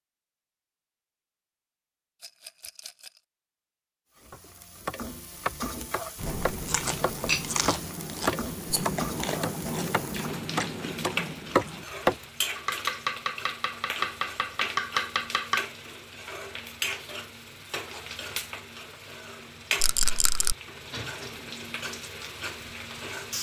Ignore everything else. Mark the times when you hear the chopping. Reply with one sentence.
The chopping can be heard from 4.3 to 15.7 s.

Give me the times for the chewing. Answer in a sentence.
The chewing can be heard from 6.2 to 11.8 s.